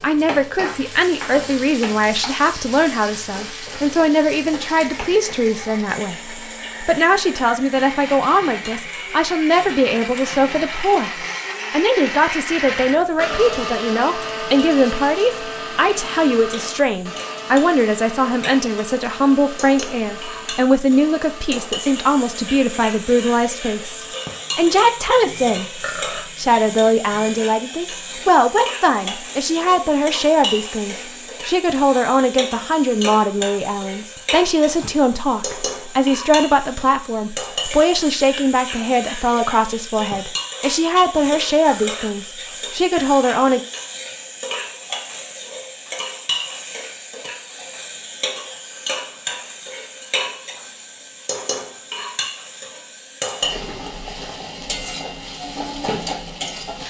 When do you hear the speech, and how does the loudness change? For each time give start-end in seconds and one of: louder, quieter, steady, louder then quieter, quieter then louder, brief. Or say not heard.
0.0-43.6 steady.